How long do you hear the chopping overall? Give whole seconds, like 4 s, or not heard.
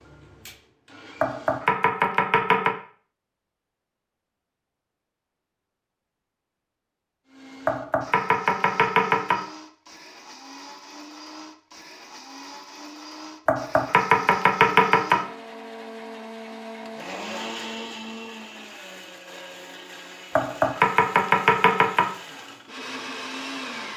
7 s.